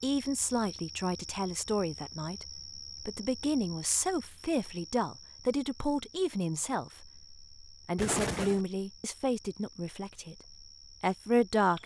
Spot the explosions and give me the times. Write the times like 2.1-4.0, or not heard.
8.0-8.7.